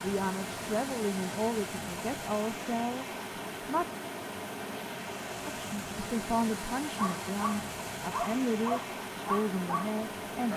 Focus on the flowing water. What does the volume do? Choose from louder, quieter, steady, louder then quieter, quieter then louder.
steady.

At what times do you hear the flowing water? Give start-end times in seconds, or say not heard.
0.0-10.5.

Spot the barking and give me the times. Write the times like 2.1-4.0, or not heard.
7.0-10.5.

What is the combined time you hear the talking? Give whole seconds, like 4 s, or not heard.
9 s.